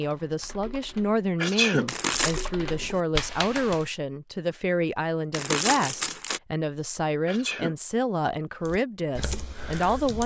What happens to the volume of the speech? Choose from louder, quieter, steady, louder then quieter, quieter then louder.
steady.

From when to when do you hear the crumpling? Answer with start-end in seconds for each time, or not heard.
1.9-2.5, 5.3-6.4.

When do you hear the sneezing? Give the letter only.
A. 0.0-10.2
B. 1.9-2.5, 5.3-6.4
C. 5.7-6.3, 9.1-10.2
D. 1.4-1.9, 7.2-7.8
D.